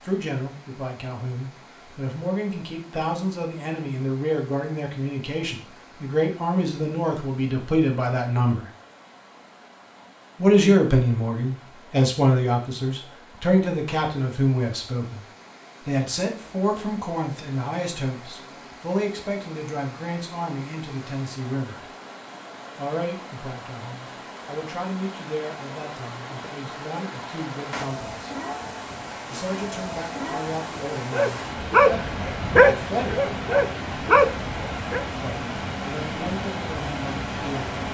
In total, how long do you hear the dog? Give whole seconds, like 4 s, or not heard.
4 s.